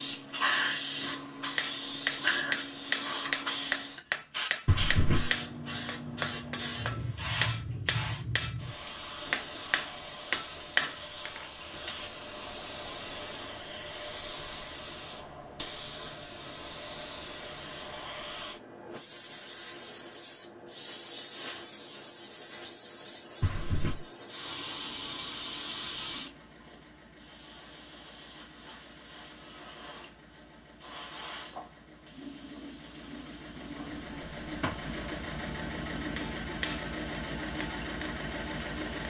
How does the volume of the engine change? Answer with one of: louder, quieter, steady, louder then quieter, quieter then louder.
louder.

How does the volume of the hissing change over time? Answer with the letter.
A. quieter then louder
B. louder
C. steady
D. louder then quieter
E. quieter
E.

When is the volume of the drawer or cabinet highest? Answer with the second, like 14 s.
5 s.